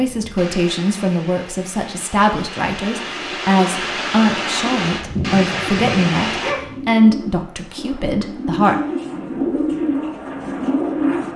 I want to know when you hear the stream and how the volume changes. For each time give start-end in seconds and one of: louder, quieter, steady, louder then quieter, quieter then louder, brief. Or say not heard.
0.0-6.5 louder.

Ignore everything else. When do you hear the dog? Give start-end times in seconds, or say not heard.
5.2-6.9.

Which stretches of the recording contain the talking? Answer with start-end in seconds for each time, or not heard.
0.0-8.8.